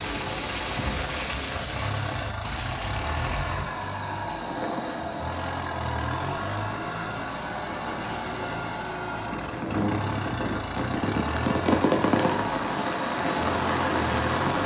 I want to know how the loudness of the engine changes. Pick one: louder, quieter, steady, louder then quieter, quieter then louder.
steady.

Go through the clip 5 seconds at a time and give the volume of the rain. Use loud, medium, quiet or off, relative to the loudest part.
medium, medium, loud.